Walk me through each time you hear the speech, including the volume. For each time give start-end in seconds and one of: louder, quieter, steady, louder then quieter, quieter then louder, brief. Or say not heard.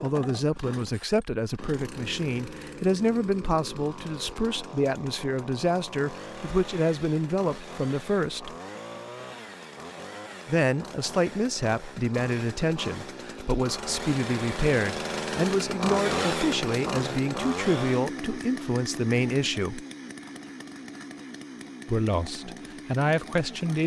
0.0-8.6 steady
10.4-19.9 steady
21.9-23.8 brief.